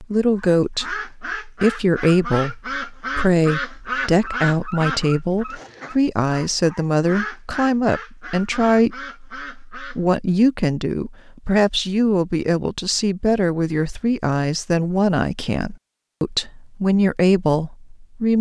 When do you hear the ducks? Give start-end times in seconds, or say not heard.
0.3-10.0.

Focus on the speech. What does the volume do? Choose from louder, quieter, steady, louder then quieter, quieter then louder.
steady.